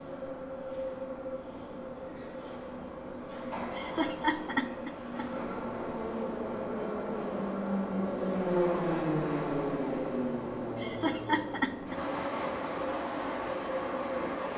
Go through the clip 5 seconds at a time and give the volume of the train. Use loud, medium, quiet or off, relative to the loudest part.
medium, loud, loud.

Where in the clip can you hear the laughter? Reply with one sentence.
The laughter can be heard from 3.8 to 5.2 s and from 10.8 to 12.0 s.